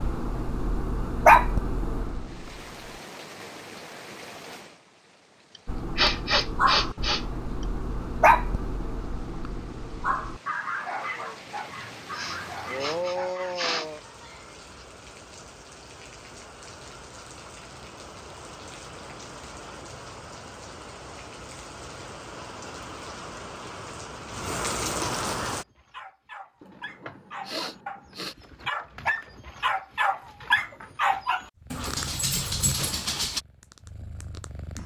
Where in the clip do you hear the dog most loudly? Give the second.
1 s.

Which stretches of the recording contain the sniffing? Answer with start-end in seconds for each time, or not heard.
5.5-7.7, 12.1-14.8, 26.6-28.4.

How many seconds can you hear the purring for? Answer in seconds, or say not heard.
3 s.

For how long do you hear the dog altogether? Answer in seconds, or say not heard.
19 s.